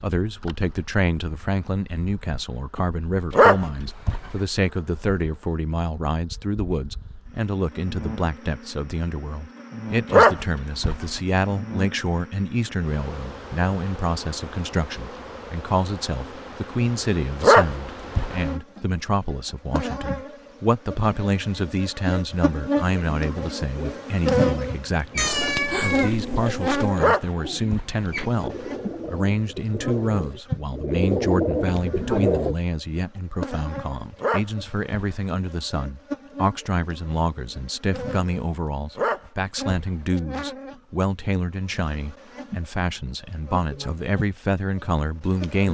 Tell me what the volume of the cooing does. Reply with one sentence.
The volume of the cooing goes up.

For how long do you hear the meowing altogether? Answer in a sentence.
You can hear the meowing for 2 seconds altogether.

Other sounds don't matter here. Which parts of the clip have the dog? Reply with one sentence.
The dog can be heard from 3.3 to 4.4 s, from 10.1 to 11.2 s, from 17.4 to 18.4 s, from 26.9 to 28.1 s, from 34.2 to 35.2 s and from 39.0 to 40.0 s.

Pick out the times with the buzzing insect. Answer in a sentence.
You can hear the buzzing insect from 0.1 to 45.6 s.